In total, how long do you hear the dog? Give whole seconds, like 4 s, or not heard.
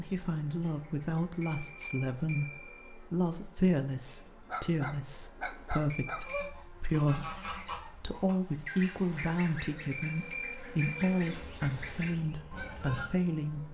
2 s.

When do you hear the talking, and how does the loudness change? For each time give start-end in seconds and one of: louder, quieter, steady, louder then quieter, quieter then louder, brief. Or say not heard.
0.0-13.6 steady.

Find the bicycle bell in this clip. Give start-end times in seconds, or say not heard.
1.4-3.0, 5.8-6.5, 9.9-11.2.